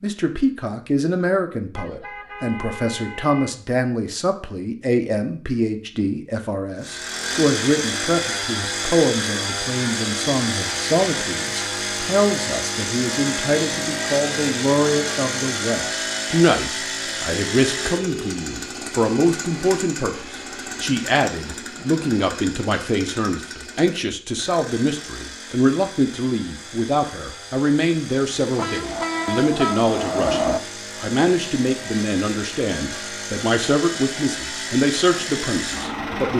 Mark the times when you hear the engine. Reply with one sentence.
You can hear the engine from 6.8 to 36.3 s.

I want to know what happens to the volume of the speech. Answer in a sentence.
The loudness of the speech stays about the same.